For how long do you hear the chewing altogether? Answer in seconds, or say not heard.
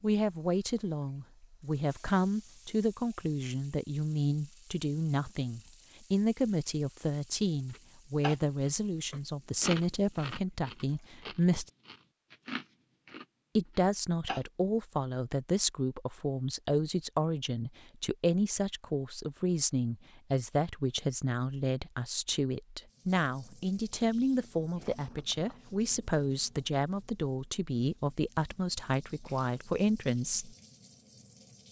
7 s.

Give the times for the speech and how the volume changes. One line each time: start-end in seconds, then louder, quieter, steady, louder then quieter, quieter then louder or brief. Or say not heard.
0.0-11.7 steady
13.6-30.6 steady.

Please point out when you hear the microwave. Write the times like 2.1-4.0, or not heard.
not heard.